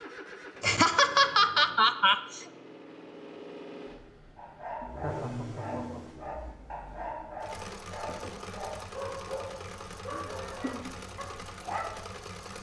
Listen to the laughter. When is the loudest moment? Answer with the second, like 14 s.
1 s.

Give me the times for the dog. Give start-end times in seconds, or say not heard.
4.3-12.0.